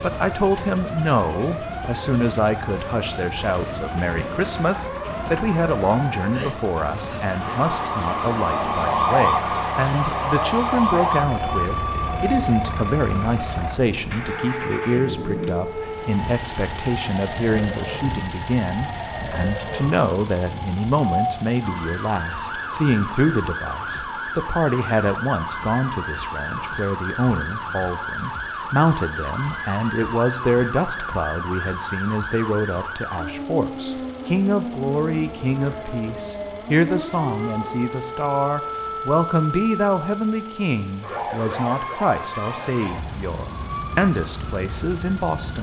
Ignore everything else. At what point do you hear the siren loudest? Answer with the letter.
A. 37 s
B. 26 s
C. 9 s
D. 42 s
C.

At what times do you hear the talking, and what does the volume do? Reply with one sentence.
The talking can be heard from 0.0 to 45.5 s, at a steady volume.